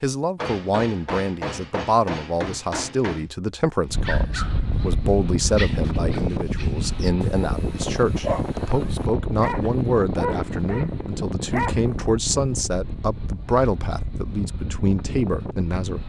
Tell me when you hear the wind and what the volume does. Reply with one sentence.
You can hear the wind from 3.9 to 16.0 s, getting quieter.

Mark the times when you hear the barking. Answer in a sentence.
You can hear the barking from 4.0 to 11.9 s.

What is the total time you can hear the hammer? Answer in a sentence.
The hammer can be heard for 3 seconds in total.